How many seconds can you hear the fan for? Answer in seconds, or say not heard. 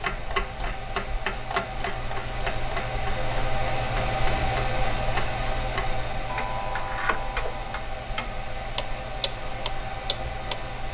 11 s.